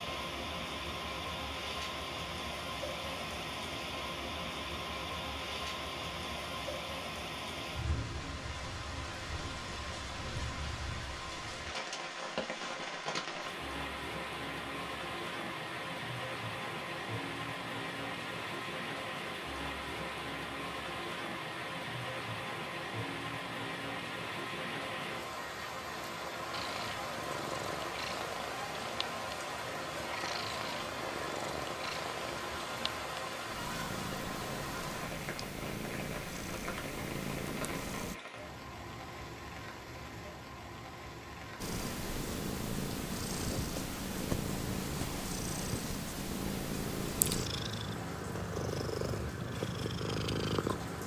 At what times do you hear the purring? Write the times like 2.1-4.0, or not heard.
26.5-38.2, 41.6-51.0.